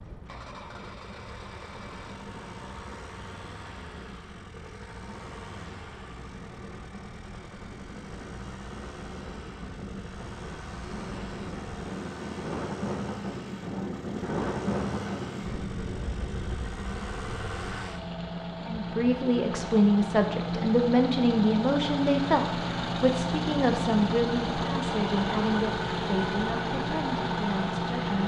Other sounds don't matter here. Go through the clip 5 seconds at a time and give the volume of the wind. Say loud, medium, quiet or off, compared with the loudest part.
quiet, medium, loud, loud, off, off.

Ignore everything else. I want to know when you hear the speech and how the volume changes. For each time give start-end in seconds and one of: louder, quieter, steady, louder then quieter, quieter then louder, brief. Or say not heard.
18.6-28.2 quieter.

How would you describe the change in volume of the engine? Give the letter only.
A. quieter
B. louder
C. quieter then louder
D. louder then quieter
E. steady
B.